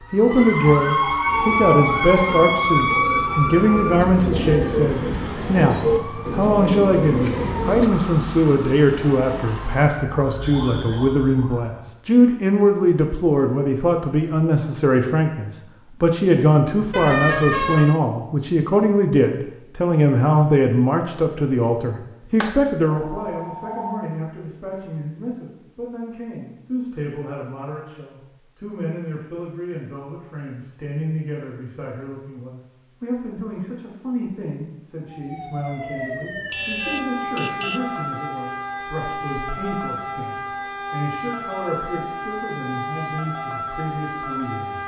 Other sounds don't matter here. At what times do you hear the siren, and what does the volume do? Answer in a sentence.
You can hear the siren from 0.0 to 11.8 s, getting quieter; and from 35.0 to 44.8 s, at a steady volume.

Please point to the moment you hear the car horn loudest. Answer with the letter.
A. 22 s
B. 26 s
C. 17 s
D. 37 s
C.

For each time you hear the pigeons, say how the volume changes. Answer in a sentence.
You can hear the pigeons from 1.2 to 7.9 s, getting louder.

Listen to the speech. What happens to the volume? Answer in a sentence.
The volume of the speech goes down.